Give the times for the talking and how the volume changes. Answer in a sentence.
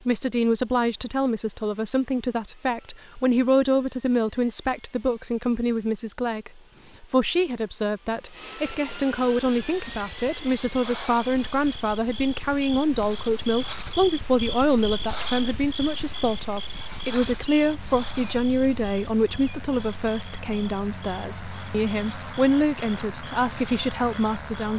The talking can be heard from 0.1 to 24.7 s, at a steady volume.